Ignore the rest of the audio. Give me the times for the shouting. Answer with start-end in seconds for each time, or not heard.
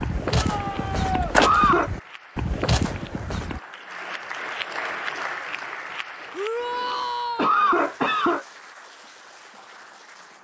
0.3-1.4, 6.3-7.5.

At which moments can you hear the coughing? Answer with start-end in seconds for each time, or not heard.
0.7-1.9, 6.6-8.4.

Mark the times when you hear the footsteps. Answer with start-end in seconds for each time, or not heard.
0.0-3.6.